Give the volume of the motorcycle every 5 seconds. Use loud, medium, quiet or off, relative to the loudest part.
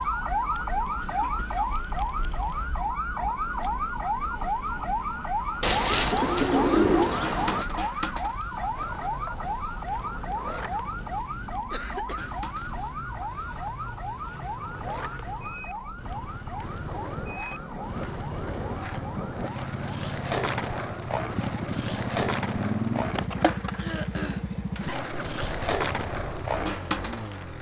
quiet, quiet, quiet, medium, loud, medium.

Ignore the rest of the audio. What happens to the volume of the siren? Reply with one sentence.
The loudness of the siren goes down.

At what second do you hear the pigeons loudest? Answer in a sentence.
The loudest moment of the pigeons is at 7 seconds.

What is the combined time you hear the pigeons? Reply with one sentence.
The pigeons can be heard for 2 seconds in total.